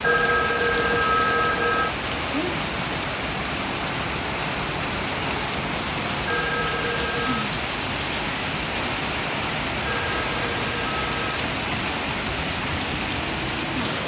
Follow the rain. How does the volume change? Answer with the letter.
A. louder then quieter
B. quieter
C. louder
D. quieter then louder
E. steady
E.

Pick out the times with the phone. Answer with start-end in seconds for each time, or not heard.
0.0-1.9, 6.2-7.5, 9.8-11.4.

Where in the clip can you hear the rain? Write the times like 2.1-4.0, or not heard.
0.0-14.0.